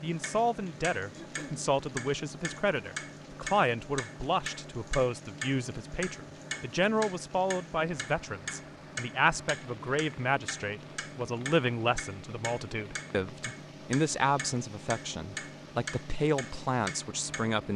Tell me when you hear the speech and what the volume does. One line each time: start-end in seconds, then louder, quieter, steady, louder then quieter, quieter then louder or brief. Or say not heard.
0.0-17.7 steady.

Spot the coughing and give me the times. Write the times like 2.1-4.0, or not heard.
1.1-1.6.